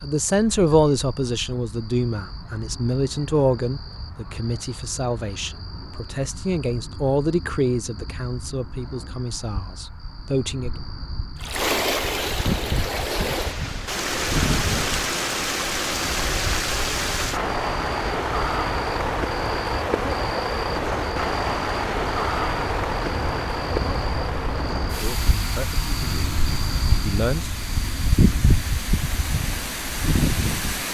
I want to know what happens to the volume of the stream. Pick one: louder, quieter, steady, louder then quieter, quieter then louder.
quieter.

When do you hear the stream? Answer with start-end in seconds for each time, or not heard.
11.3-30.8.